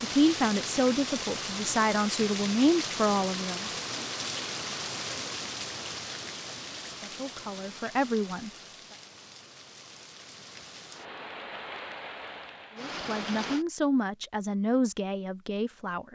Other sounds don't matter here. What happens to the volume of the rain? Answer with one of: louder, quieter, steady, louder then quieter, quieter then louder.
quieter then louder.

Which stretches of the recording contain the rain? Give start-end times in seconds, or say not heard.
0.0-13.7.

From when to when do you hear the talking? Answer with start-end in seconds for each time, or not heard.
0.0-3.7, 6.8-8.5, 12.8-16.1.